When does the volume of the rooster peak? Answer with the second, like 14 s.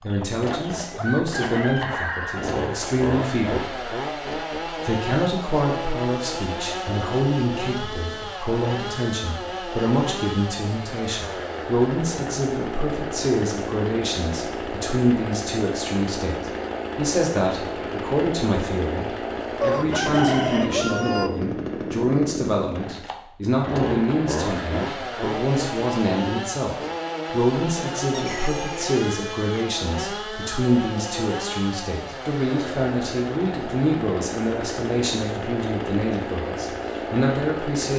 20 s.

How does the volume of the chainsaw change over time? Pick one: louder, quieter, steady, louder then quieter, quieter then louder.
steady.